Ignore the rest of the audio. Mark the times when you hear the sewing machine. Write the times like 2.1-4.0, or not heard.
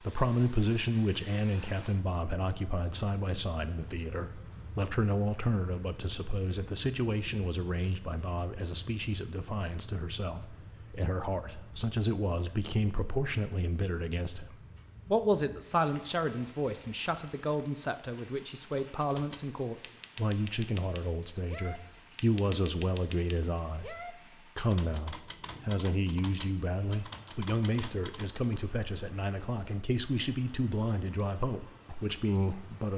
not heard.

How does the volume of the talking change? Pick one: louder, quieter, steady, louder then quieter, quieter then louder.
steady.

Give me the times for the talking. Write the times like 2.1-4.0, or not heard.
0.0-32.9.